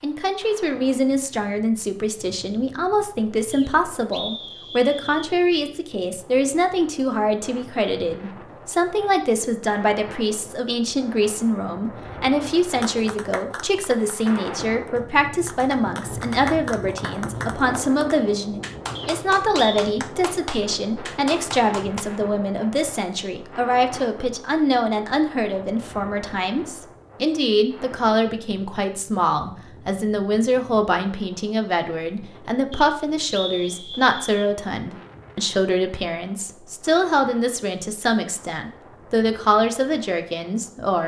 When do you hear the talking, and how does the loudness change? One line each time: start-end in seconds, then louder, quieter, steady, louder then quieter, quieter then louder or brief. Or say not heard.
0.0-41.0 steady.